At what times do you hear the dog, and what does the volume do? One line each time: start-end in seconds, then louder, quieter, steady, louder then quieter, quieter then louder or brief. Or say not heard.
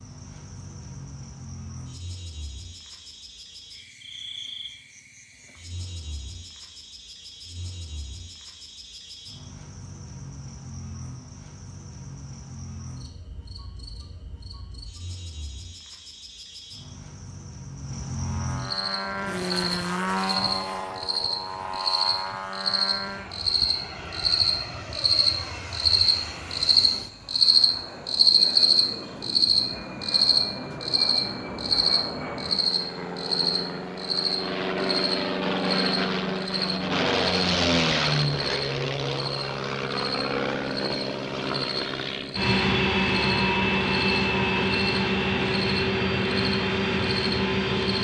not heard.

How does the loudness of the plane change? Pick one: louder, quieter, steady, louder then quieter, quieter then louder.
quieter then louder.